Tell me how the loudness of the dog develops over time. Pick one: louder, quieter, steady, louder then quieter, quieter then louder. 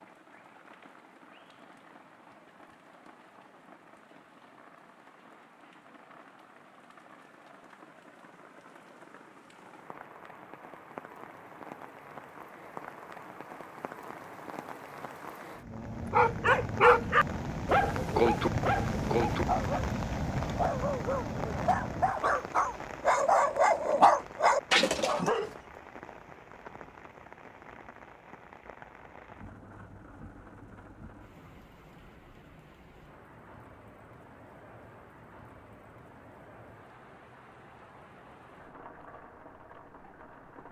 quieter then louder.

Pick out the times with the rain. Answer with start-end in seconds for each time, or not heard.
0.0-40.6.